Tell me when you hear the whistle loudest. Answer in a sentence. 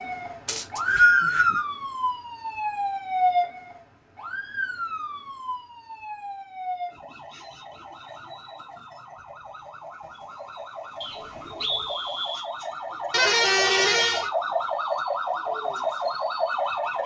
The volume of the whistle peaks at 1 second.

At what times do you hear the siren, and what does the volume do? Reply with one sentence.
The siren can be heard from 0.0 to 17.0 s, getting quieter then louder.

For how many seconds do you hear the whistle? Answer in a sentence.
You can hear the whistle for 3 seconds altogether.